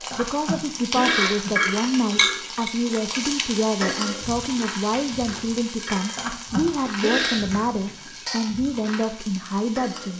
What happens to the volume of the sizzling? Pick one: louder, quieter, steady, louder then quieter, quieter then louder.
quieter.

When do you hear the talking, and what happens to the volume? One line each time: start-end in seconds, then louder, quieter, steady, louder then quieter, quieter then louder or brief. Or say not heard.
0.0-10.1 steady.